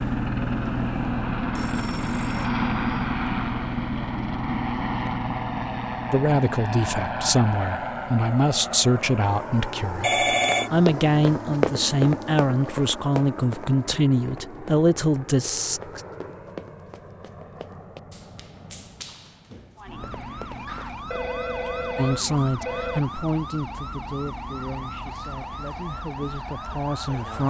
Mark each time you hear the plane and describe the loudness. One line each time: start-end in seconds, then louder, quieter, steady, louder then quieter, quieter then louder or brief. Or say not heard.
0.0-27.4 quieter.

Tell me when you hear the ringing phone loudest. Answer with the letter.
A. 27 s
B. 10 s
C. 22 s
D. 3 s
B.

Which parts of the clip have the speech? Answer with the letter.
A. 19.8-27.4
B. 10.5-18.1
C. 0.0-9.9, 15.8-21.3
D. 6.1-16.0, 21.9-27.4
D.